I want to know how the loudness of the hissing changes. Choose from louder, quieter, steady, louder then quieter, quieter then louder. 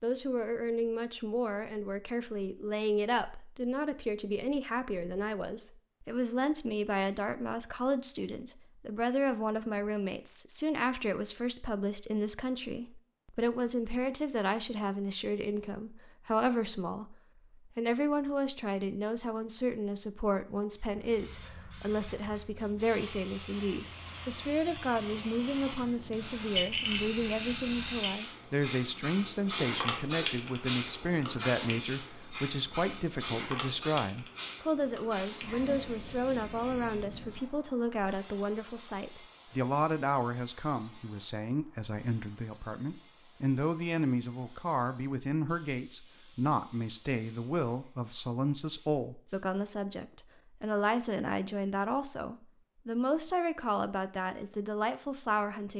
louder then quieter.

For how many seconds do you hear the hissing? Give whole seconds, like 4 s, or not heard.
29 s.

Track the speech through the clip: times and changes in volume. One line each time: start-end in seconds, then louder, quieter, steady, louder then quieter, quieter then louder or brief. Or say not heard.
0.0-17.1 steady
17.8-55.7 steady.